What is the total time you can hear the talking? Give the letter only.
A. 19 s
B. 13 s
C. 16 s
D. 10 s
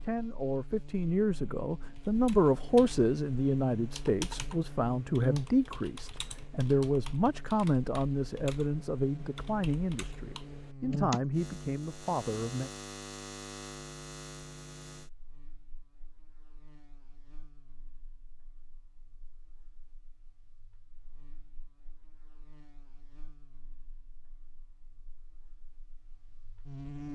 B.